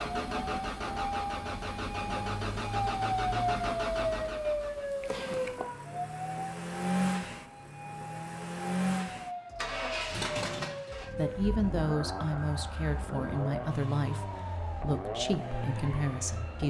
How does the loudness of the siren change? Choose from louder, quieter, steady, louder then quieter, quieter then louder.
quieter.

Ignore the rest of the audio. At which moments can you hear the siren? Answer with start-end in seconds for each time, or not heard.
0.0-16.6.